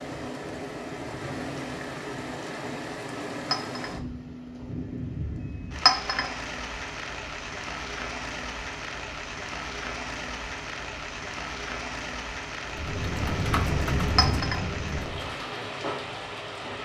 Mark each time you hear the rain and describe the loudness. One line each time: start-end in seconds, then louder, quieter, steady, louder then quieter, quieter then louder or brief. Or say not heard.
0.0-16.8 steady.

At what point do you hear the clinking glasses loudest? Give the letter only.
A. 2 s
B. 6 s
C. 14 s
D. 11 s
B.